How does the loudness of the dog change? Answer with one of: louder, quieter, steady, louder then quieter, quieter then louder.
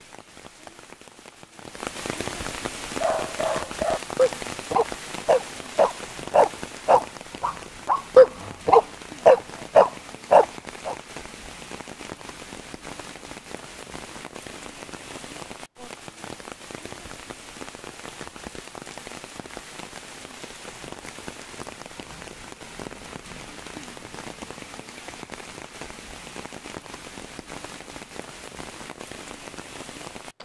louder.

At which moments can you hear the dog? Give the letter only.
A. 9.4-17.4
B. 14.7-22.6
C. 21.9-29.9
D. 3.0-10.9
D.